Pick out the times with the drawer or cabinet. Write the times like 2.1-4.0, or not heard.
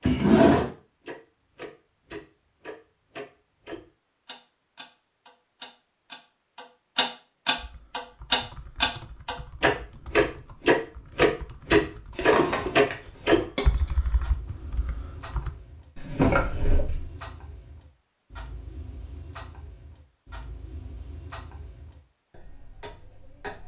0.1-0.7, 12.2-13.4, 15.9-17.1.